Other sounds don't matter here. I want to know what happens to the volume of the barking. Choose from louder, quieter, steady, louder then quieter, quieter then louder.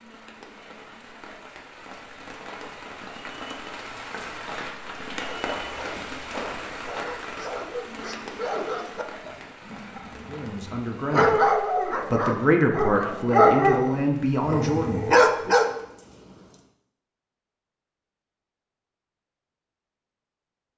louder.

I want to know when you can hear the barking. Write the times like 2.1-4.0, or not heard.
5.2-15.7.